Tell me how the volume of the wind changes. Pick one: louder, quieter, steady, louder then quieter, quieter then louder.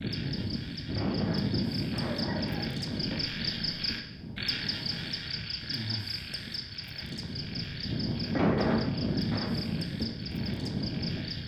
quieter then louder.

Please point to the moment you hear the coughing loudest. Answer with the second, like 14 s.
9 s.